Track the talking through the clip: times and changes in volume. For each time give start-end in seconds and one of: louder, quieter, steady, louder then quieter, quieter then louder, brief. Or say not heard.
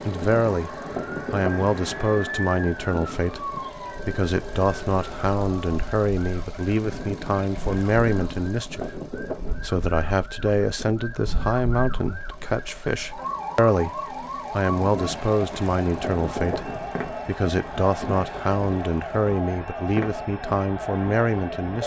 0.0-0.7 brief
1.3-21.8 steady.